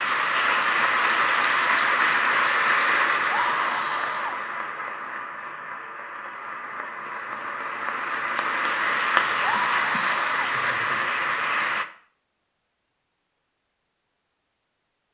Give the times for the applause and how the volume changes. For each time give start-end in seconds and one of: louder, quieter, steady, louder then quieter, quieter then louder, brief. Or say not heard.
0.0-11.8 quieter then louder.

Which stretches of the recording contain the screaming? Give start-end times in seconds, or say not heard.
3.2-4.3, 9.4-10.5.